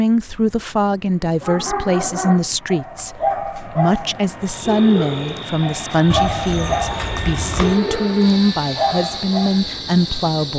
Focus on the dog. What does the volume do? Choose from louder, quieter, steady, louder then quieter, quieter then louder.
steady.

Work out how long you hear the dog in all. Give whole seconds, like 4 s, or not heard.
8 s.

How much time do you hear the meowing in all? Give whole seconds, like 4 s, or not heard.
2 s.